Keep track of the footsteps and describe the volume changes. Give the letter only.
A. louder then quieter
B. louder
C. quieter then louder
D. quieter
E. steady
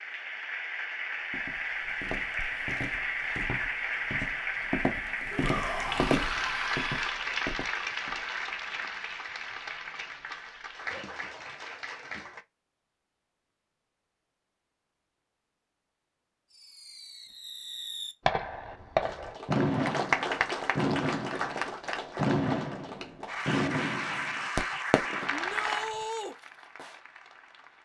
A.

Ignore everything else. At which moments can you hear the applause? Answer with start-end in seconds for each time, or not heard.
0.0-12.4, 19.0-27.8.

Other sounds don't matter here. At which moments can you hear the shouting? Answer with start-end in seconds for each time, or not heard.
5.3-7.0, 25.3-26.4.